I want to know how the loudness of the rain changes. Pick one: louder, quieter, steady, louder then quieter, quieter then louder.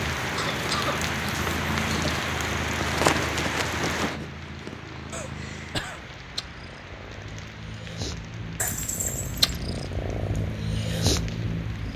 quieter.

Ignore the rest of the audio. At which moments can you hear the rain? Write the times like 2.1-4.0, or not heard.
0.0-11.9.